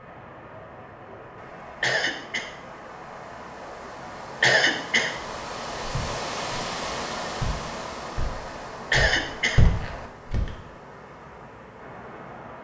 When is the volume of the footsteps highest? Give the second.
10 s.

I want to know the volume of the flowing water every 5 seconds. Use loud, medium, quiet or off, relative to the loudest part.
medium, loud, medium.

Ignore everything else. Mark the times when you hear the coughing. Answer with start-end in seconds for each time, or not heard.
1.8-2.5, 4.4-5.1, 8.9-9.6.